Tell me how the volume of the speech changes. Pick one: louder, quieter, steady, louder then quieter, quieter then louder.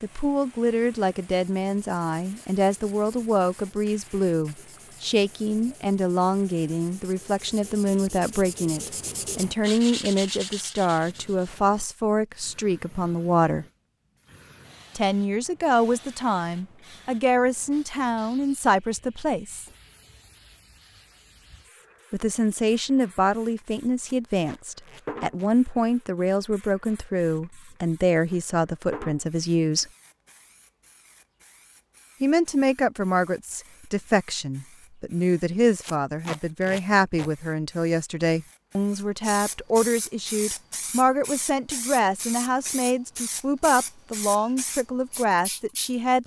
steady.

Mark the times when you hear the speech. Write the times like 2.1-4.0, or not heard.
0.0-13.7, 14.9-19.6, 22.1-29.9, 32.2-46.2.